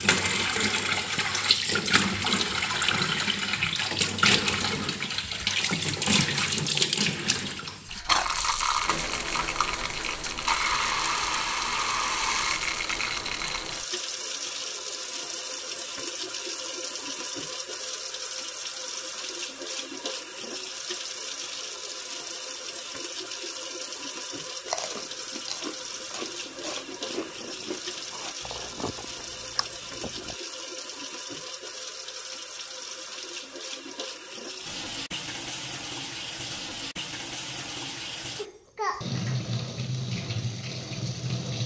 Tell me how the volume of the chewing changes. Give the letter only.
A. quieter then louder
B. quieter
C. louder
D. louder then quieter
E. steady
B.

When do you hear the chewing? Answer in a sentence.
You can hear the chewing from 24.6 to 30.4 s.